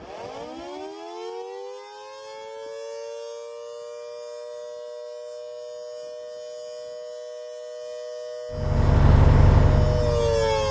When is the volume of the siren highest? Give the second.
10 s.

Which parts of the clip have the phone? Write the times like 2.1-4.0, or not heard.
not heard.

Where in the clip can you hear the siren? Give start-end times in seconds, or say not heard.
0.0-10.6.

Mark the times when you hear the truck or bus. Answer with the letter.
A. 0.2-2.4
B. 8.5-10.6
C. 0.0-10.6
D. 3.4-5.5
B.